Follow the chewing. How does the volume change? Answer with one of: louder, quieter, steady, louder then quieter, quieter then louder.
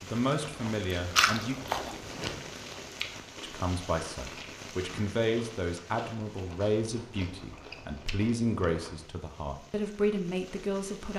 quieter.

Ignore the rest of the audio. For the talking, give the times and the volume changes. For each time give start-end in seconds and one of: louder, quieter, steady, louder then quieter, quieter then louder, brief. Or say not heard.
0.0-1.6 brief
3.4-11.1 steady.